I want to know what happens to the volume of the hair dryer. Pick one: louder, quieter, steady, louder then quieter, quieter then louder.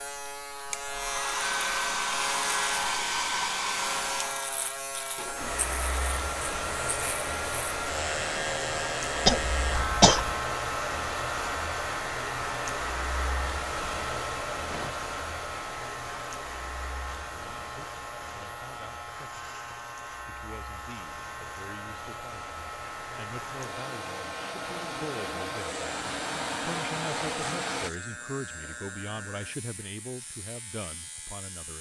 quieter then louder.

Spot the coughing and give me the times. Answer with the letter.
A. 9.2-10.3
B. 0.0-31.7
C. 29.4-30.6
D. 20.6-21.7
A.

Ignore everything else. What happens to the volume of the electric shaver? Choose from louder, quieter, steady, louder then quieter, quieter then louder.
quieter.